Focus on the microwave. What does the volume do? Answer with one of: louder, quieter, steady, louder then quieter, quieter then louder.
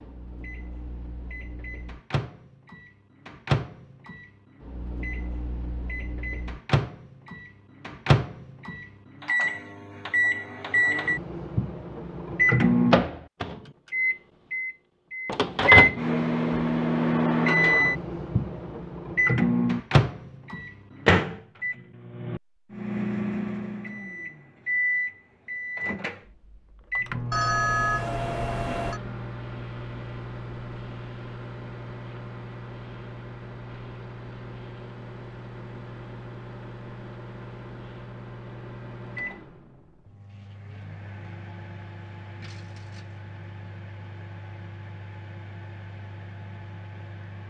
louder then quieter.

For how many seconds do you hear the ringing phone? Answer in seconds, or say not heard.
2 s.